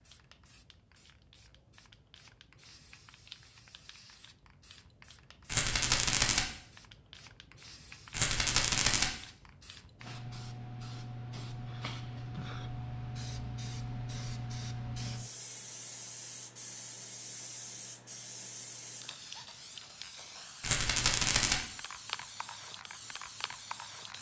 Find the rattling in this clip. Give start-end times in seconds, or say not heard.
5.5-6.5, 8.1-9.1, 20.6-21.6.